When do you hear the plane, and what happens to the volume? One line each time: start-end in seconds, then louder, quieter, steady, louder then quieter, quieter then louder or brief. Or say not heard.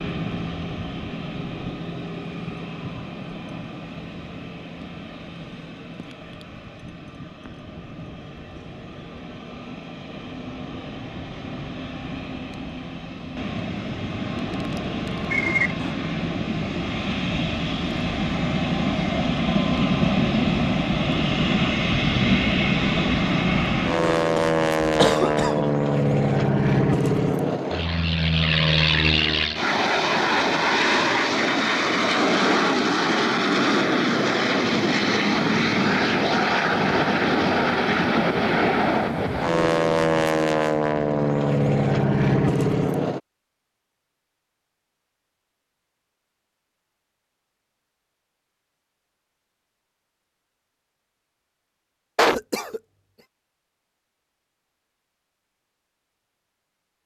0.0-43.2 louder.